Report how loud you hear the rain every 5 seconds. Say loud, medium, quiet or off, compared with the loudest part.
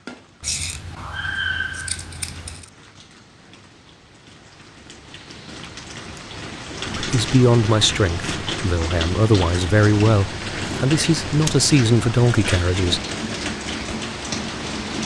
quiet, loud, loud.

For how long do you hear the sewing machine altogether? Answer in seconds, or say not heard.
not heard.